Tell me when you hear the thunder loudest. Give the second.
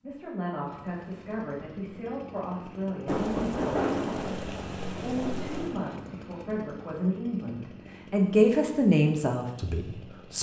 4 s.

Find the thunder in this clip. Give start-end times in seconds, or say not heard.
3.0-5.8.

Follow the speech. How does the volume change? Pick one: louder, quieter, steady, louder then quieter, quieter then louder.
louder.